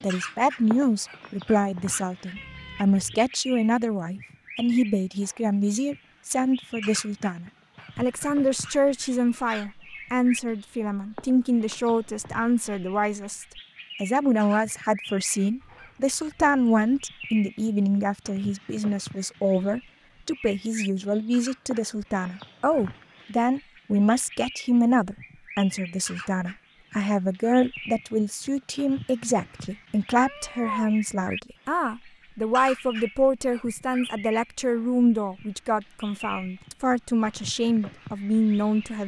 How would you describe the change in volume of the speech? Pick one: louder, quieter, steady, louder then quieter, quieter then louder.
steady.